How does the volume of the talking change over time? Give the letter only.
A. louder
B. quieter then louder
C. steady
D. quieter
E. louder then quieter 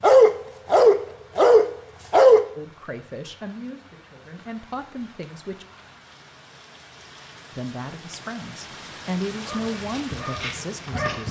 E.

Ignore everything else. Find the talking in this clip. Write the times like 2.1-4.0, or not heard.
2.5-5.7, 7.5-11.2.